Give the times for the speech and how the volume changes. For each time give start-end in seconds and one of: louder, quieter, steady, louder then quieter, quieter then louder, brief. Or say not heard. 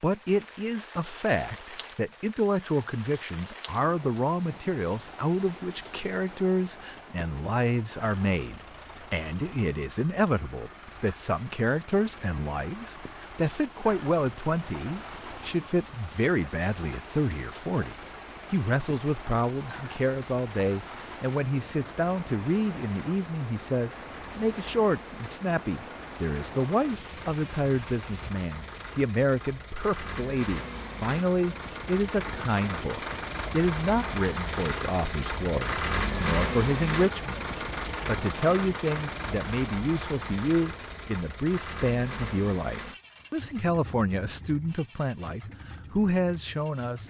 0.0-37.5 steady
38.0-47.0 steady.